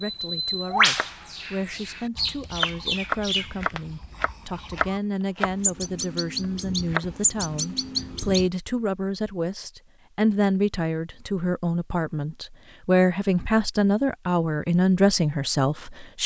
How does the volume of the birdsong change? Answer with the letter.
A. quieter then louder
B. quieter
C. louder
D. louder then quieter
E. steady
A.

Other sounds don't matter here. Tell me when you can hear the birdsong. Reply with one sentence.
You can hear the birdsong from 0.0 to 8.5 s.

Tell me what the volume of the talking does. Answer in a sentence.
The volume of the talking goes up.